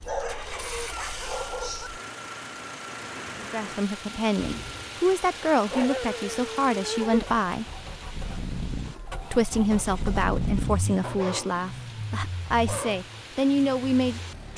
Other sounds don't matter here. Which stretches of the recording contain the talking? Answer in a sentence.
The talking can be heard from 3.4 to 7.7 s and from 9.3 to 14.5 s.